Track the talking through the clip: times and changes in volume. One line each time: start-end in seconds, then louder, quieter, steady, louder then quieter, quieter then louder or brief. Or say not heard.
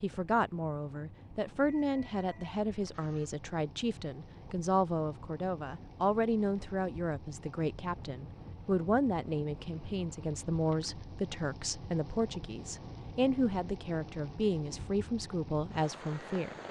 0.0-16.6 steady.